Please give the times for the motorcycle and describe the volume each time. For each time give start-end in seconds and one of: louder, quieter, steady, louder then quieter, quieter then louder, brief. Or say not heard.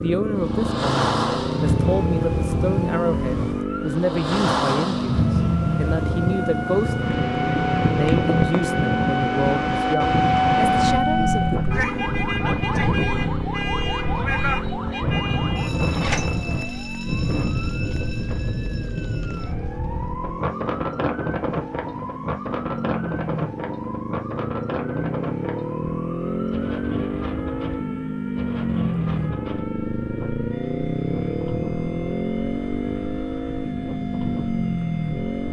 0.0-35.4 quieter then louder.